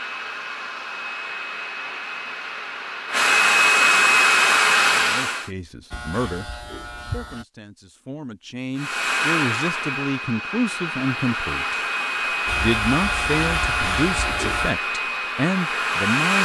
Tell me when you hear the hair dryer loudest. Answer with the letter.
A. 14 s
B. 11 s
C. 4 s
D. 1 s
C.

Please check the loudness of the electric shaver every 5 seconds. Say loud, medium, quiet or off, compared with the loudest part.
off, medium, loud, off.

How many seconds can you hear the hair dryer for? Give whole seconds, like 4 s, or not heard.
13 s.